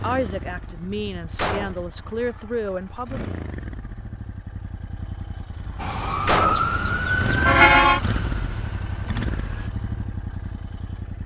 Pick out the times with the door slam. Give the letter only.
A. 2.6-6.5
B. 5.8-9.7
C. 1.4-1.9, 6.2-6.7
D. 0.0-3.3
C.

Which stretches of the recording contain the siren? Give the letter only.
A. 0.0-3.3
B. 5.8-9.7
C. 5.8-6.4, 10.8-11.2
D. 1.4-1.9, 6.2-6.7
B.